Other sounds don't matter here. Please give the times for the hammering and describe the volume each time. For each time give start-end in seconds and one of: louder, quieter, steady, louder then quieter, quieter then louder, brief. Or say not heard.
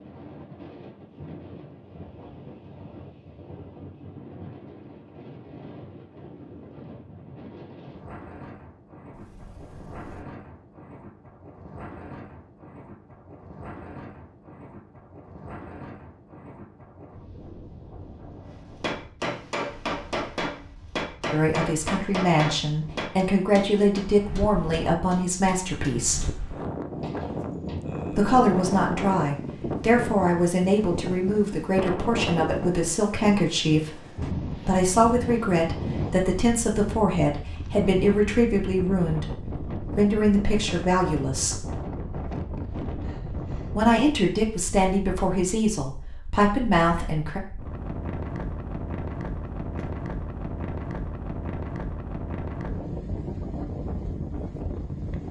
18.8-27.8 quieter.